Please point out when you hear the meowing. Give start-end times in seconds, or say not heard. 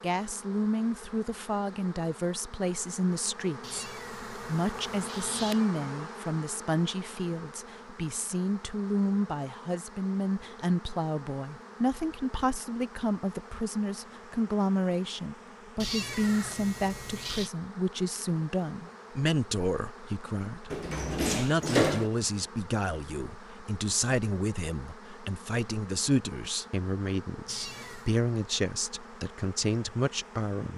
3.6-5.7, 15.8-17.5, 27.4-28.1.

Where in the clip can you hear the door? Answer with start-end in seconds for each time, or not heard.
20.7-22.1.